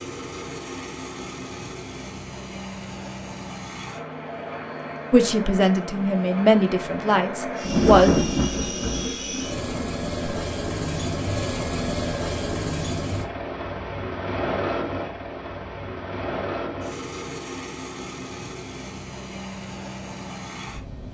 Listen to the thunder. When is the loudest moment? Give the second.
8 s.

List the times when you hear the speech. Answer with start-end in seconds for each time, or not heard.
5.1-8.2.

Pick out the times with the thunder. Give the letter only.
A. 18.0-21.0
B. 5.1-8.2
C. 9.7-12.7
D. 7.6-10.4
D.